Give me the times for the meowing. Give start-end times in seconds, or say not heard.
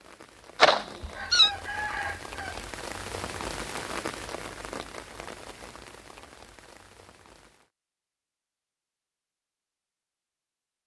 0.6-1.5.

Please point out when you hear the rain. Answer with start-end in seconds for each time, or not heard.
0.0-7.7.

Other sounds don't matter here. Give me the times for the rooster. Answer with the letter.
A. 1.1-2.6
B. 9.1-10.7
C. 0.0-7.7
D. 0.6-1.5
A.